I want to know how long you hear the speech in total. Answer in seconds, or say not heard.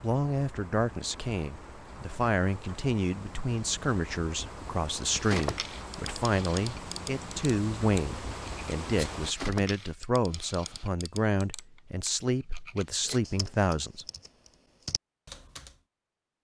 14 s.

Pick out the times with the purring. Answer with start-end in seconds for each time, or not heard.
not heard.